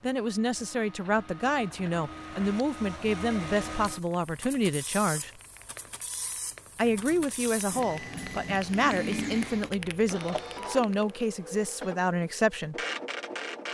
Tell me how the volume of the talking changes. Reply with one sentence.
The loudness of the talking stays about the same.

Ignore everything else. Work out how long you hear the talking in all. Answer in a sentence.
The talking can be heard for 11 seconds in total.